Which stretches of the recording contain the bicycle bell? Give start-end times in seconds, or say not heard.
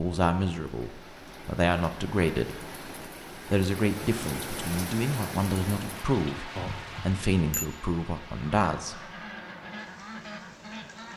6.5-7.7.